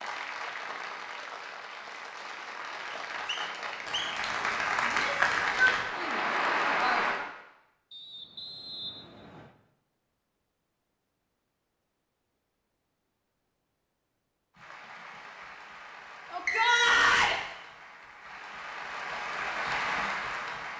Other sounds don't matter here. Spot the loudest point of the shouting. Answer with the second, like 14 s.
17 s.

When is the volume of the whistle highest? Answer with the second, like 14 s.
17 s.